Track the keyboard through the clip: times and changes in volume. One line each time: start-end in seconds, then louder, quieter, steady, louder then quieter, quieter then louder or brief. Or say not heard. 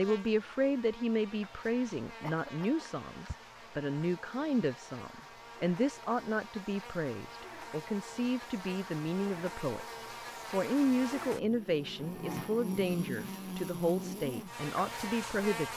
not heard.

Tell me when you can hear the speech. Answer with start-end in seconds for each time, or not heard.
0.0-9.8, 10.5-15.7.